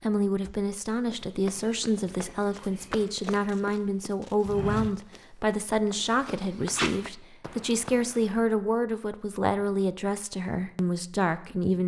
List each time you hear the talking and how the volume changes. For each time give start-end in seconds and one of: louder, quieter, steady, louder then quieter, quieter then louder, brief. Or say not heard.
0.0-11.8 steady.